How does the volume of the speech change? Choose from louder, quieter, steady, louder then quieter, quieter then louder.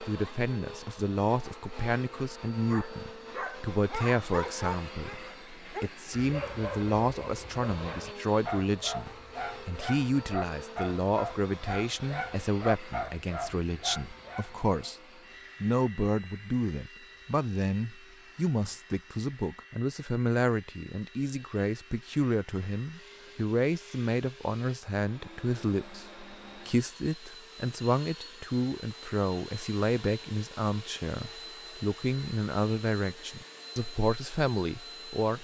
steady.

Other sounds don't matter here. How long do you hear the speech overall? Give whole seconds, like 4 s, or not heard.
35 s.